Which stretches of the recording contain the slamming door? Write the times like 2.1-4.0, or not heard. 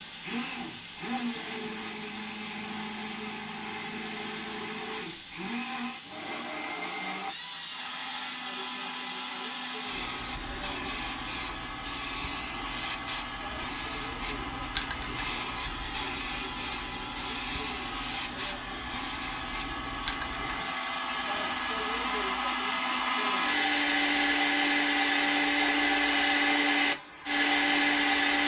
not heard.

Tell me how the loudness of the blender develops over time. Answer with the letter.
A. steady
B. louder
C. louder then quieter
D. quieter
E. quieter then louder
B.